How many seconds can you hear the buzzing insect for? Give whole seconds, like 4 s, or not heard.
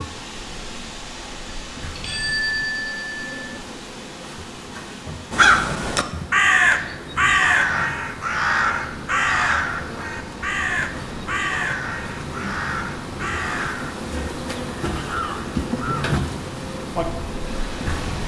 18 s.